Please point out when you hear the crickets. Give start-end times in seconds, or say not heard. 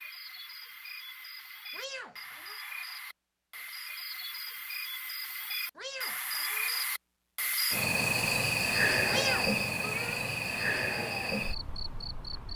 0.0-12.5.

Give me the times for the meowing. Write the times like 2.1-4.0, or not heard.
1.7-2.5, 5.8-6.8, 9.1-10.2.